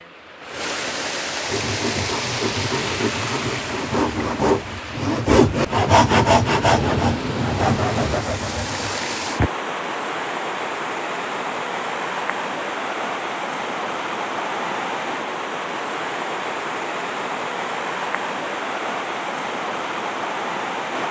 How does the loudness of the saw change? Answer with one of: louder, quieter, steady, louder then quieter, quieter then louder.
louder then quieter.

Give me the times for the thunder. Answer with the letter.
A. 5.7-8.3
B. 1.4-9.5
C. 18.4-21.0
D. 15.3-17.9
A.